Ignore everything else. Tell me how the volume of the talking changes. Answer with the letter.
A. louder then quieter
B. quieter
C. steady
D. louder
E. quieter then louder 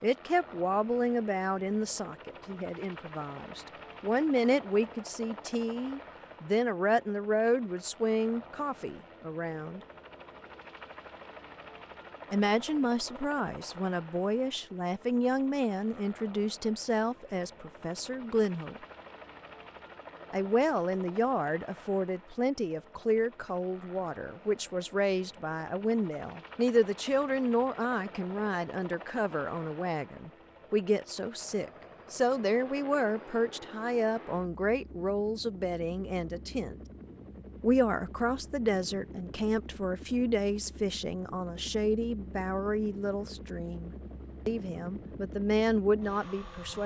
C.